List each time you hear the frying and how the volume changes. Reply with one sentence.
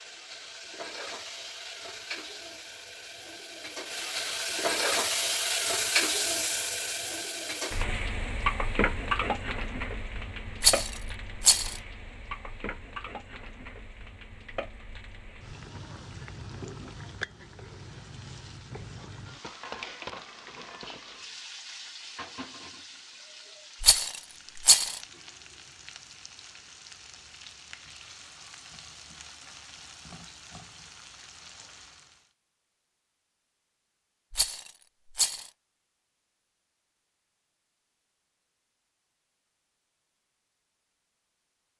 The frying can be heard from 0.0 to 32.3 s, getting quieter.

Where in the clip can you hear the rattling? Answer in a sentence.
The rattling can be heard from 10.6 to 11.8 s, from 23.8 to 25.0 s and from 34.3 to 35.5 s.